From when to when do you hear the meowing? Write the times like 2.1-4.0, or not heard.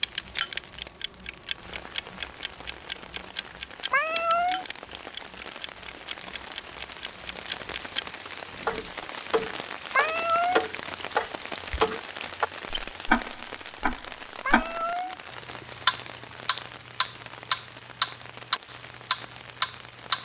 3.9-4.7, 9.9-10.7, 14.4-15.2.